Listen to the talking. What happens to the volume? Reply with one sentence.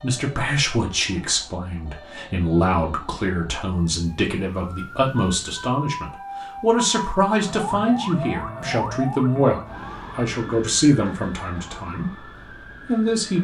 The loudness of the talking stays about the same.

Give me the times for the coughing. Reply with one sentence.
The coughing can't be heard in this clip.